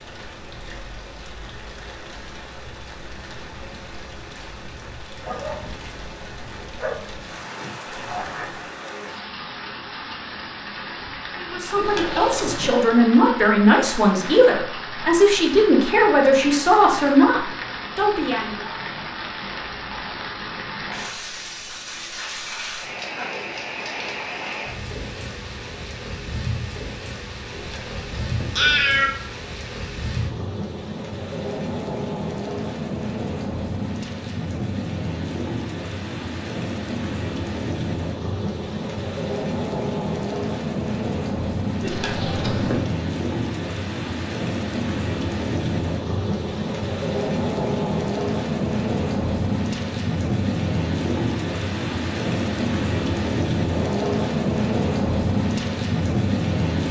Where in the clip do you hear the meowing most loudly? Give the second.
29 s.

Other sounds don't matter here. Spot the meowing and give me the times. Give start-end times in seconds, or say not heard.
11.8-12.7, 27.5-29.1, 41.8-42.9.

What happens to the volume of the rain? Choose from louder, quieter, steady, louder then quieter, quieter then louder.
louder.